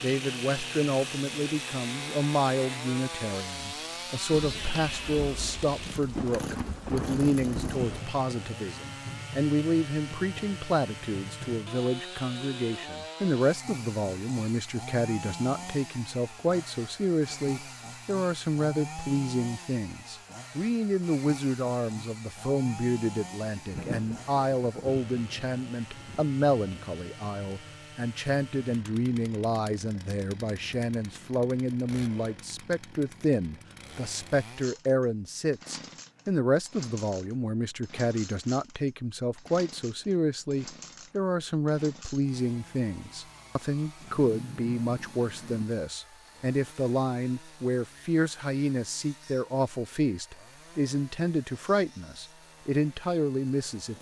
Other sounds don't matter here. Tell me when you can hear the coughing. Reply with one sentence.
The coughing can't be heard in this clip.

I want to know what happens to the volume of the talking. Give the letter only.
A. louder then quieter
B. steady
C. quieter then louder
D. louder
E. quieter
B.